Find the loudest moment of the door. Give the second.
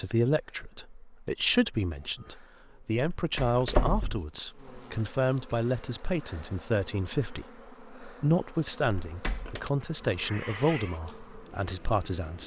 4 s.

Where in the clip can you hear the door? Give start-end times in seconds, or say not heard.
3.0-4.2, 9.1-9.7.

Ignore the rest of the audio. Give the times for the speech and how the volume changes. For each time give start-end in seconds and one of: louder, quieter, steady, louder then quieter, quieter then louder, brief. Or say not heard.
0.0-12.4 steady.